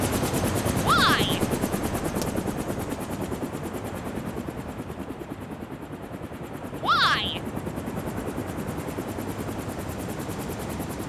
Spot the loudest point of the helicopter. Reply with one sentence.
The volume of the helicopter peaks at 1 second.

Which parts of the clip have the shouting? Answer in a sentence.
The shouting can be heard from 0.8 to 1.4 s and from 6.8 to 7.4 s.